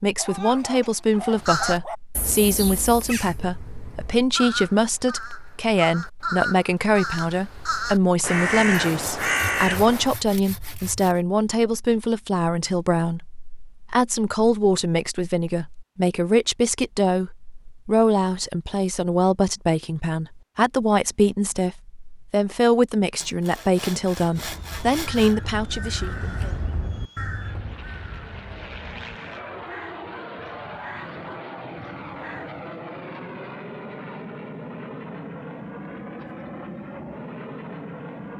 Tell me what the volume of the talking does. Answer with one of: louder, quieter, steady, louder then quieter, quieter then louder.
steady.